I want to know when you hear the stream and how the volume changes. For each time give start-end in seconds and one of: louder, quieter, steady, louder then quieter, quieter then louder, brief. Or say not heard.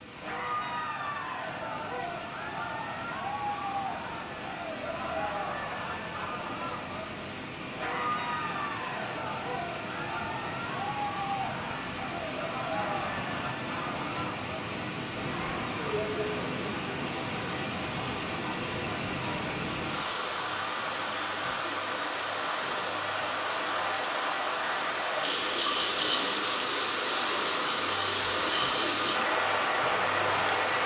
0.0-30.8 louder.